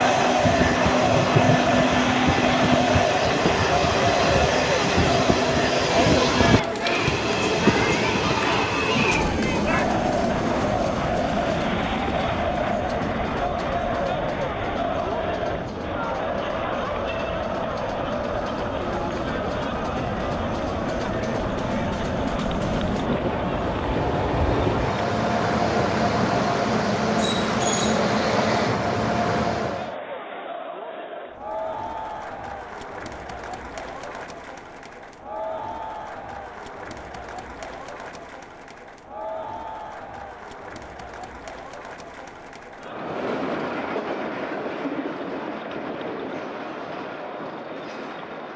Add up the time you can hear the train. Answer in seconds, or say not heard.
36 s.